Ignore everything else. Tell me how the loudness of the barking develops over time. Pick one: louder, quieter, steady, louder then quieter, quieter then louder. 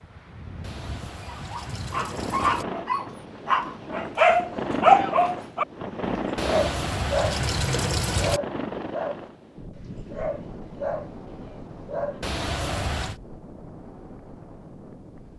louder then quieter.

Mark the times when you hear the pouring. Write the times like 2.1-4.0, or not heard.
0.6-2.6, 6.3-8.4, 12.2-13.2.